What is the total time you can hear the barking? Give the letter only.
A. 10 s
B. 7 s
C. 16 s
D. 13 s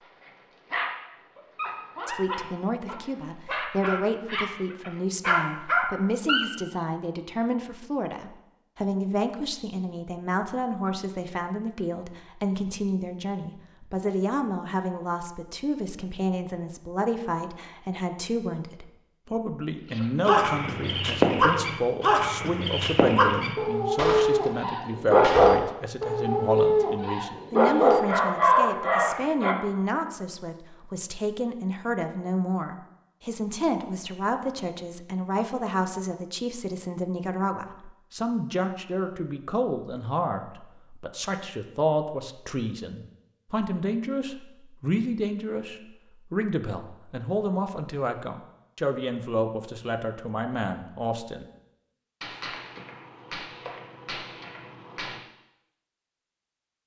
C.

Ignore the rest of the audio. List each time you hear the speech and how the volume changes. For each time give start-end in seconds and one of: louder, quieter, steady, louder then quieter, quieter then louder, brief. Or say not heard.
2.0-51.5 steady.